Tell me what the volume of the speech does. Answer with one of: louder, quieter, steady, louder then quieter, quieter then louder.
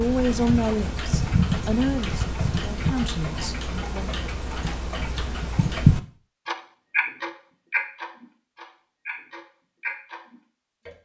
quieter.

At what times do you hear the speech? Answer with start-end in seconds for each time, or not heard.
0.0-4.2.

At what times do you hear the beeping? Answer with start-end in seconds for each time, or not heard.
not heard.